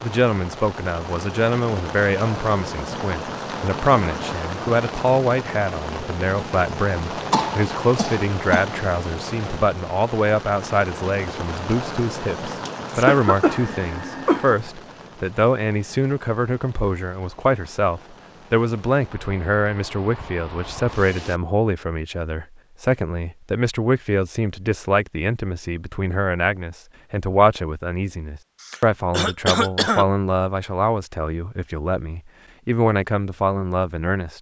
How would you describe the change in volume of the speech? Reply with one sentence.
The loudness of the speech stays about the same.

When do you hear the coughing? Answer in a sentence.
You can hear the coughing from 7.3 to 8.7 s, from 12.7 to 14.6 s and from 28.6 to 30.1 s.